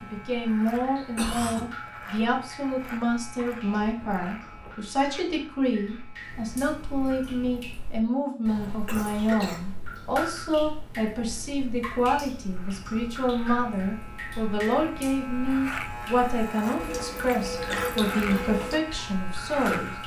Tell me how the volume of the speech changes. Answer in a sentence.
The loudness of the speech stays about the same.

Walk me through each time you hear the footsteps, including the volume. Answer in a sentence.
You can't hear the footsteps here.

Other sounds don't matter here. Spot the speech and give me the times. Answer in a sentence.
The speech can be heard from 0.0 to 19.9 s.